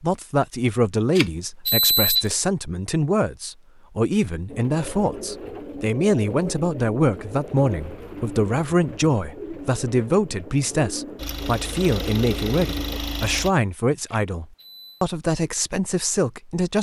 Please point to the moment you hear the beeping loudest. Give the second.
2 s.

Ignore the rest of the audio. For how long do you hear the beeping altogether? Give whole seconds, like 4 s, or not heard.
2 s.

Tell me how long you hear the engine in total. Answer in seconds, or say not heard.
2 s.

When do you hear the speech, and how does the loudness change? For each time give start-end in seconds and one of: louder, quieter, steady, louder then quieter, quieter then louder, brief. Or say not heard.
0.0-16.7 steady.